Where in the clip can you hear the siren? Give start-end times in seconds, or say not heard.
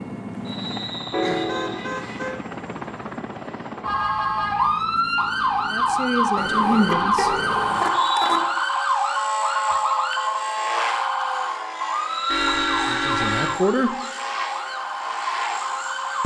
3.8-16.2.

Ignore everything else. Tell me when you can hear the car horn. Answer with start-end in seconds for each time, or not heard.
1.1-2.4, 6.3-8.4, 12.3-13.6.